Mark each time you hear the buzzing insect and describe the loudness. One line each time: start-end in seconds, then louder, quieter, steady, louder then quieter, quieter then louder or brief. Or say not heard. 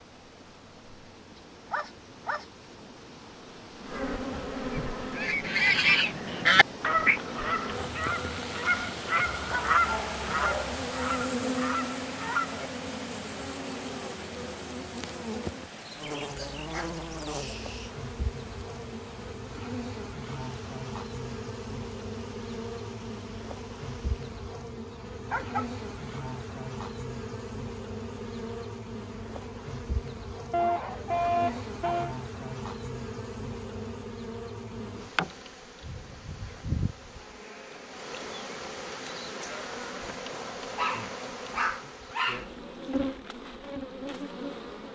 0.0-44.9 steady.